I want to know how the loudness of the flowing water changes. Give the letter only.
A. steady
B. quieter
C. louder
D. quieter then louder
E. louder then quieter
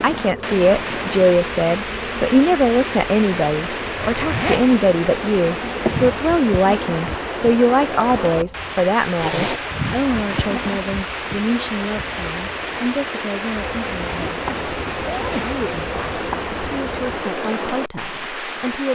A.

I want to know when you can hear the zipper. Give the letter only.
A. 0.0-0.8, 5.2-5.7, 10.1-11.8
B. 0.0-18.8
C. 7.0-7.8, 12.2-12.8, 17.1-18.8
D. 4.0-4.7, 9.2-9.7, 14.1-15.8
D.